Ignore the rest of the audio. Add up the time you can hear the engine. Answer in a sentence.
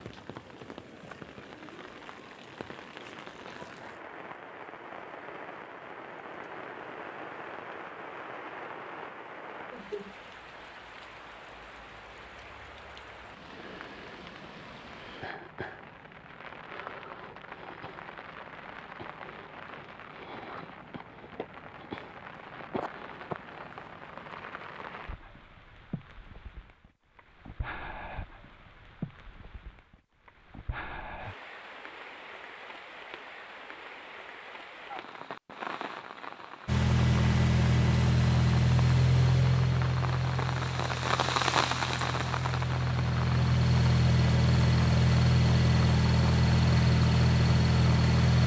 You can hear the engine for 12 seconds altogether.